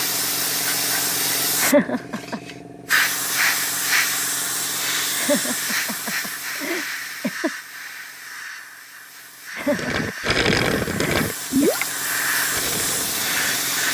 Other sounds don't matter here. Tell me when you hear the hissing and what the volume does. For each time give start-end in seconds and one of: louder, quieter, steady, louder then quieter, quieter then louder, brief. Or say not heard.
0.0-13.9 quieter then louder.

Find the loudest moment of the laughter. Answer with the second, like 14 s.
2 s.